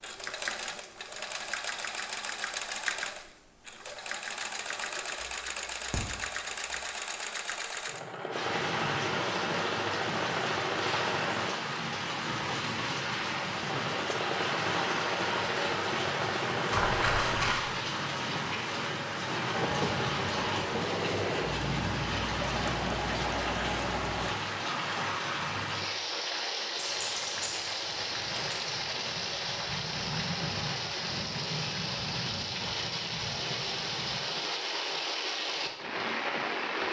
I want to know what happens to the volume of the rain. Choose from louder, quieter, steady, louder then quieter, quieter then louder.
steady.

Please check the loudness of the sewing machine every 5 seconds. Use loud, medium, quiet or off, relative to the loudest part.
loud, loud, loud, loud, loud, off, off, off.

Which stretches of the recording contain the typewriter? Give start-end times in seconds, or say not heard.
not heard.